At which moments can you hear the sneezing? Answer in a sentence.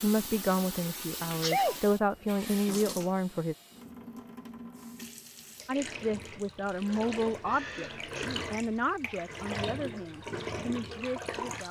The sneezing can be heard from 1.4 to 1.8 s and from 7.4 to 8.4 s.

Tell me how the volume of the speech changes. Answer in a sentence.
The volume of the speech goes down.